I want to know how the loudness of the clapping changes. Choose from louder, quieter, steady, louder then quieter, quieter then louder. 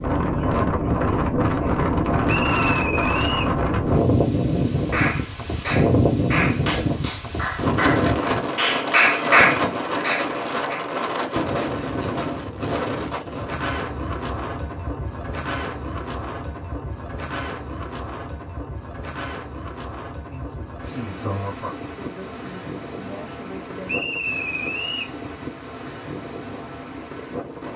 louder.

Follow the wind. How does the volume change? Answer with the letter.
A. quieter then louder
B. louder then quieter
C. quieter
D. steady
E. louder
C.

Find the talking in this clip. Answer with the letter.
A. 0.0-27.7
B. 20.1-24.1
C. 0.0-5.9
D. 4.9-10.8
B.